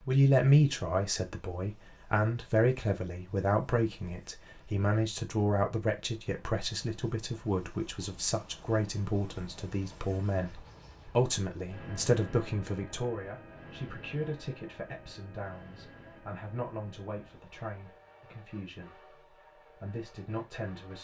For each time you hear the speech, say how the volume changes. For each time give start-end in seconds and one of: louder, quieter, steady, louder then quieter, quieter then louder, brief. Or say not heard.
0.1-19.0 quieter
19.8-20.9 brief.